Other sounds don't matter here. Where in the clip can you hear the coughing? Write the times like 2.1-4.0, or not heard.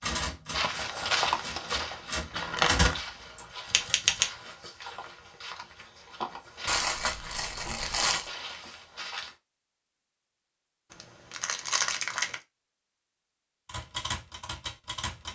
not heard.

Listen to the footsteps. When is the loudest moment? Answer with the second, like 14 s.
1 s.